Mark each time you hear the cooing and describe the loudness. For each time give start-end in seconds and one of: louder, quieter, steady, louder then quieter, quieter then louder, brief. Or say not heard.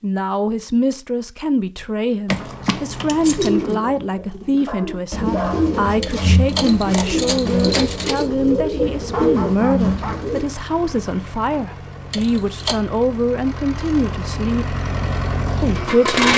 3.4-10.4 louder.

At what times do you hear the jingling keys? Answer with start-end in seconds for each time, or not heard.
2.2-3.8, 6.0-8.3, 12.1-12.8.